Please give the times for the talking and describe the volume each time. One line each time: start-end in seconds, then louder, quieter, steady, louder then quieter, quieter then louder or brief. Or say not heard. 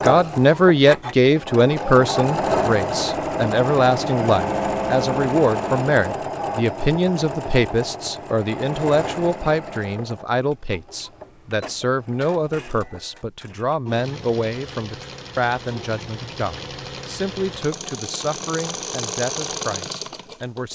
0.0-20.7 quieter.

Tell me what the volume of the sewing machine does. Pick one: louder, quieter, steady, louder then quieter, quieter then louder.
quieter then louder.